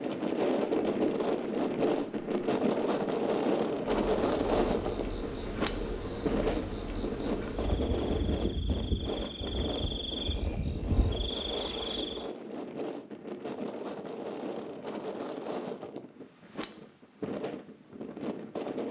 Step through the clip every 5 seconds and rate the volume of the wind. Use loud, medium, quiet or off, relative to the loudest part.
loud, medium, medium, medium.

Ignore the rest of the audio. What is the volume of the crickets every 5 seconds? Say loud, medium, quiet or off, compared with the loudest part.
medium, loud, loud, off.